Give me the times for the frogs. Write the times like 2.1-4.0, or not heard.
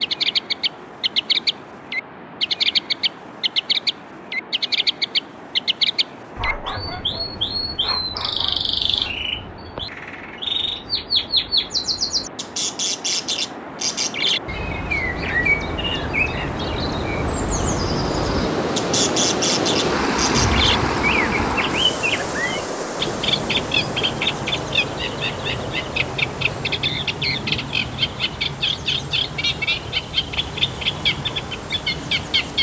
not heard.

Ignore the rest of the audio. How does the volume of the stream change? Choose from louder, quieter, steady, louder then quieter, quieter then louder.
louder then quieter.